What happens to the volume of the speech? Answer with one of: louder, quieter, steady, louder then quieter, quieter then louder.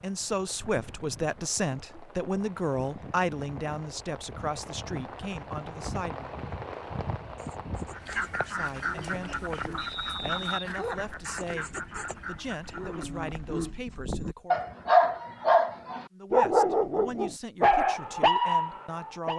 quieter.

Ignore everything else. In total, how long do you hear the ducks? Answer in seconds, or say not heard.
5 s.